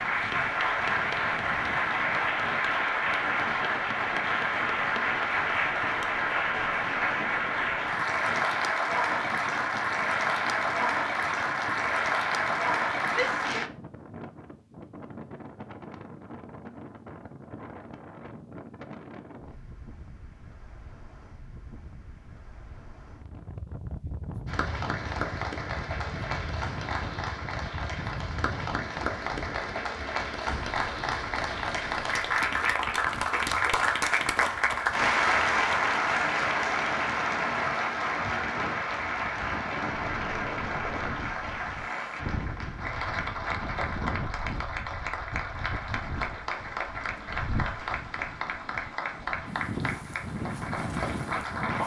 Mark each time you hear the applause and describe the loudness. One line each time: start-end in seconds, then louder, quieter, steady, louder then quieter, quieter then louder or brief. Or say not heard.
0.0-13.7 steady
24.4-51.8 louder then quieter.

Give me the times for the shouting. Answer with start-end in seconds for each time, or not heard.
13.1-13.7.